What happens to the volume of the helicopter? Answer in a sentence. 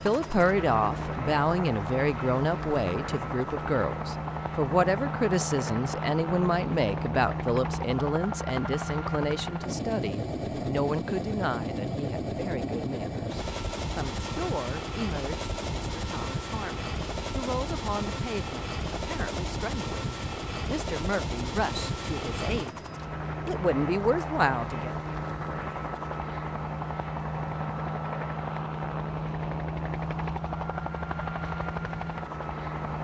The volume of the helicopter stays about the same.